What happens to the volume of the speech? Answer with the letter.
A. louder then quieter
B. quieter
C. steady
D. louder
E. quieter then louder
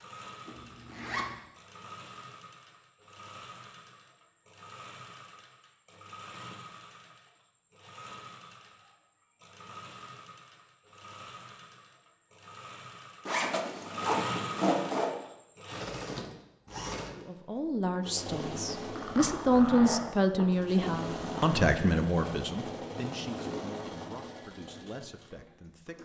A.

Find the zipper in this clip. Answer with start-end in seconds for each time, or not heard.
0.5-1.4, 13.2-15.2, 18.9-21.6.